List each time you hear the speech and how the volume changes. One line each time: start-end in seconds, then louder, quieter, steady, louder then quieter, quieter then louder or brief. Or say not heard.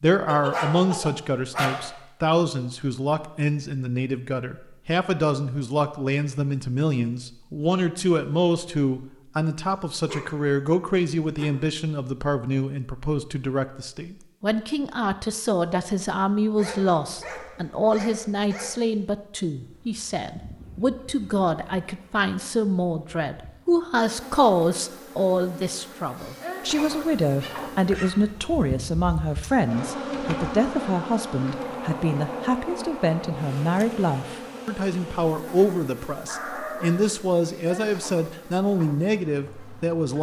0.0-40.1 steady.